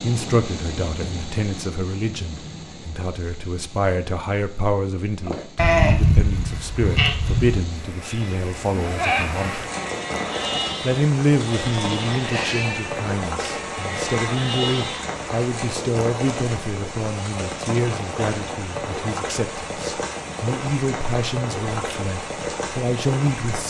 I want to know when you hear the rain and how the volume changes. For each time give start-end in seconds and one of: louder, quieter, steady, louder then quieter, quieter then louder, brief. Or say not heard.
0.0-23.6 louder.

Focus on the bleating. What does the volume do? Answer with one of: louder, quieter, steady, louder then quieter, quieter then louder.
quieter.